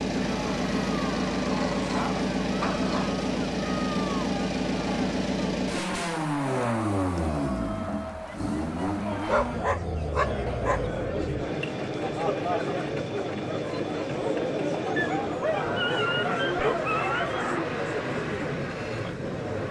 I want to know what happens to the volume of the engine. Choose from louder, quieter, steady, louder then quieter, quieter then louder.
quieter.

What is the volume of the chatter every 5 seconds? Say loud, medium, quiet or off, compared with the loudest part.
medium, medium, loud, loud.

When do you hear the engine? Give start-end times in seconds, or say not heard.
0.0-19.6.